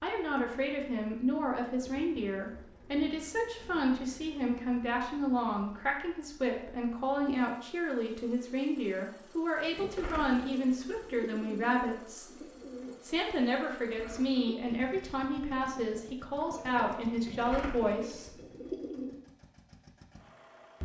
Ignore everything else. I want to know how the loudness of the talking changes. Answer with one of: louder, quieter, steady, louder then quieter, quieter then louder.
steady.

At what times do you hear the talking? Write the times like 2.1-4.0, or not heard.
0.0-12.3, 13.0-18.3.